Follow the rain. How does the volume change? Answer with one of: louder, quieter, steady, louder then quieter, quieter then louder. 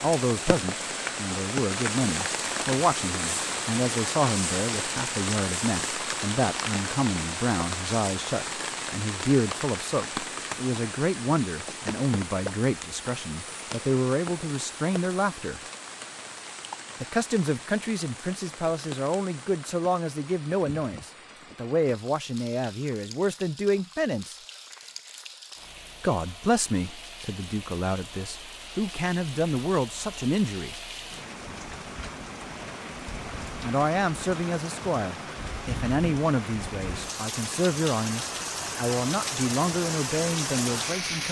quieter then louder.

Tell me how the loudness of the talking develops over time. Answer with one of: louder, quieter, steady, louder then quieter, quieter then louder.
steady.